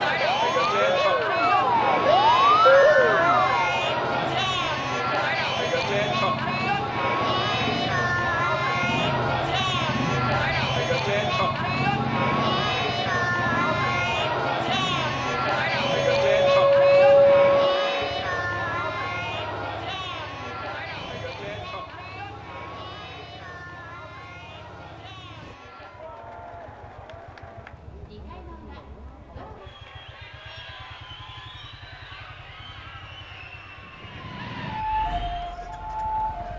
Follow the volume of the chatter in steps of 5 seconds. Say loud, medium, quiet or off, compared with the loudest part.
loud, loud, loud, loud, quiet, quiet, quiet, quiet.